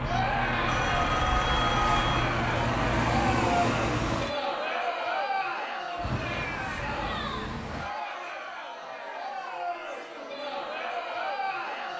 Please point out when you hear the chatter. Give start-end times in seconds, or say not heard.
0.0-11.9.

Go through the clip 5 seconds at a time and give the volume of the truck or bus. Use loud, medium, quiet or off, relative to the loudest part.
loud, medium, off.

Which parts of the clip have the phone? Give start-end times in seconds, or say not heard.
0.7-2.3.